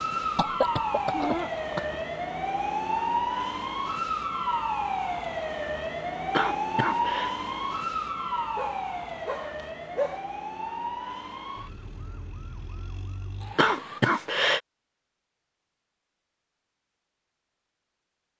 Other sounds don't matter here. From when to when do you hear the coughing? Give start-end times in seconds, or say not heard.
0.3-2.0, 6.3-7.3, 13.6-14.6.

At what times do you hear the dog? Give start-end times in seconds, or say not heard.
8.6-10.2.